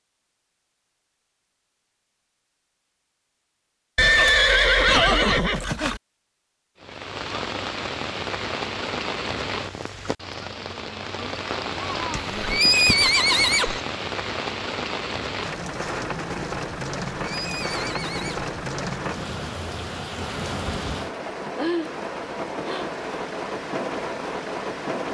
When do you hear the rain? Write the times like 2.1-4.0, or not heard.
6.8-25.0.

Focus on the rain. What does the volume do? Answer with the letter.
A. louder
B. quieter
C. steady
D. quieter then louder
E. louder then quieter
C.